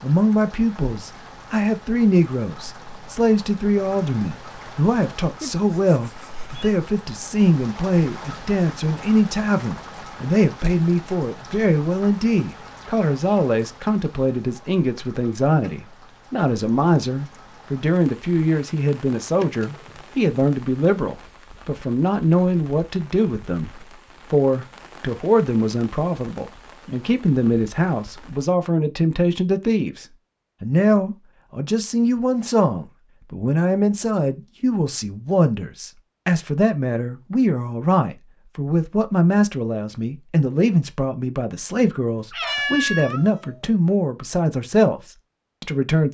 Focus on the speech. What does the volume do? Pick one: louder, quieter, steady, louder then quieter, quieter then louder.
steady.